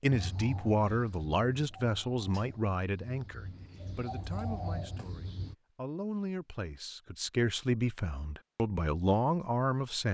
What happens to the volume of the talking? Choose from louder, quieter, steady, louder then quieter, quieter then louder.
quieter then louder.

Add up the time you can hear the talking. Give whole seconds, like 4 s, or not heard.
10 s.